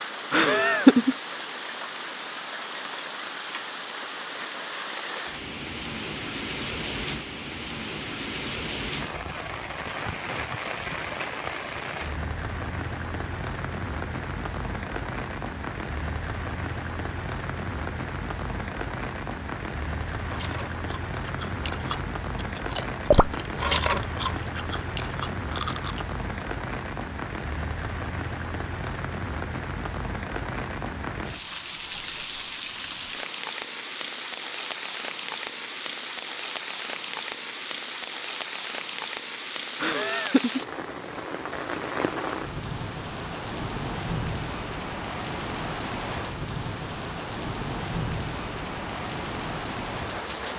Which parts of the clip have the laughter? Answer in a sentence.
The laughter can be heard from 0.3 to 1.1 s and from 39.8 to 40.6 s.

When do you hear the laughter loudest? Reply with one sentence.
The loudest moment of the laughter is at 1 second.